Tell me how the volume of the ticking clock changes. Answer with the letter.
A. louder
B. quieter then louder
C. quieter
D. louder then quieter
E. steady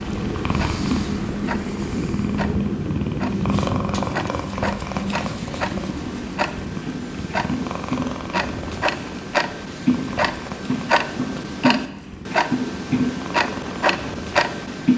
A.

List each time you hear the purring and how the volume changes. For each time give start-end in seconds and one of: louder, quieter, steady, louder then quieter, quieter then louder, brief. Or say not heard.
0.0-14.8 quieter.